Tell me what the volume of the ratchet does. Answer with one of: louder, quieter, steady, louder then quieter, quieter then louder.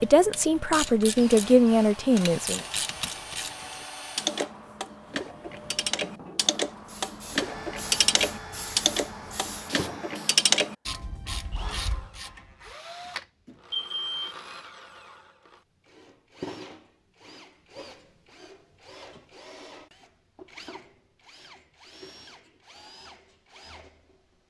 louder.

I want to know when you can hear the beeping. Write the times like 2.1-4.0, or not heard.
13.4-14.3.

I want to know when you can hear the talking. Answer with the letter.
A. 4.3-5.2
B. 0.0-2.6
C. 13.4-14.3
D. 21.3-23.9
B.